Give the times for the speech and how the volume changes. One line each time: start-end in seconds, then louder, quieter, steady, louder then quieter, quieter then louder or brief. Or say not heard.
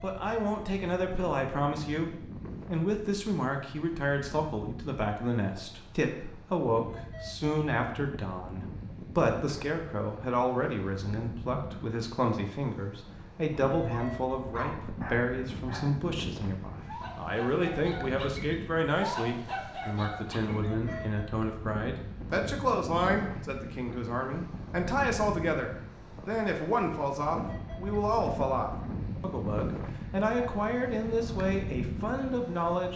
0.0-32.9 steady.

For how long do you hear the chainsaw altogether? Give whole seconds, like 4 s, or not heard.
not heard.